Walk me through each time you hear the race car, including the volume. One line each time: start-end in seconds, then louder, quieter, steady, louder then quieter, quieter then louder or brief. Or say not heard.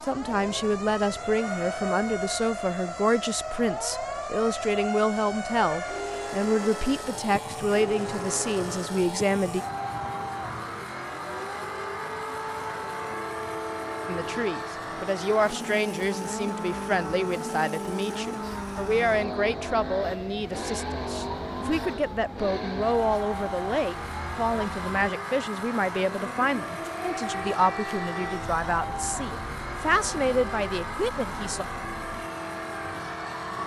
0.0-33.6 steady.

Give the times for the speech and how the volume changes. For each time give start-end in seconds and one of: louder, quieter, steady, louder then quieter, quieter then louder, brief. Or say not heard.
0.0-9.7 steady
14.1-31.6 steady.